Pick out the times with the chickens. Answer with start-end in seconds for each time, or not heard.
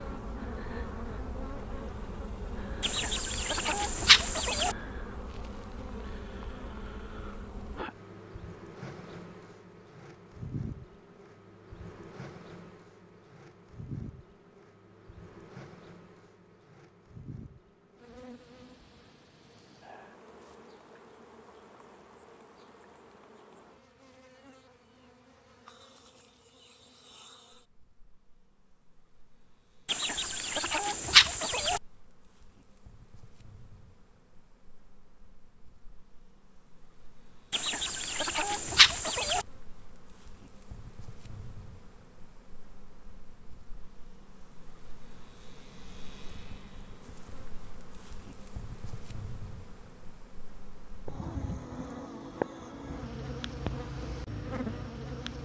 2.8-4.8, 29.9-31.8, 37.5-39.5.